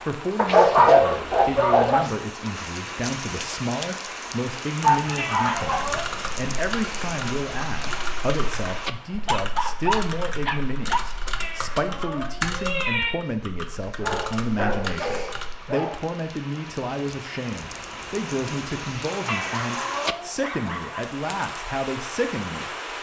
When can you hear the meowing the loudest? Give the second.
13 s.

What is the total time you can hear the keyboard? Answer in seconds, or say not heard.
10 s.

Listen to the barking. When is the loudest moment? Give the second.
1 s.